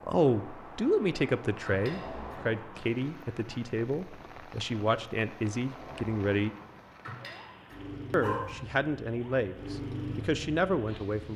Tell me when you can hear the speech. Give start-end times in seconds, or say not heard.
0.1-6.5, 8.1-11.3.